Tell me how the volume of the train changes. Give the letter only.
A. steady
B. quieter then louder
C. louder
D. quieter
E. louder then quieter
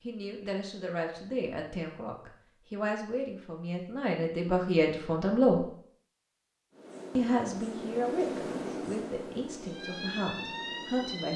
E.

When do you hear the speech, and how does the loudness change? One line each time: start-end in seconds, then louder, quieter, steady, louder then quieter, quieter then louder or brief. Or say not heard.
0.0-5.6 louder
7.2-11.3 quieter.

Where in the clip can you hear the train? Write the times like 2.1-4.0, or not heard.
6.7-11.3.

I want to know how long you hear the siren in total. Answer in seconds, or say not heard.
2 s.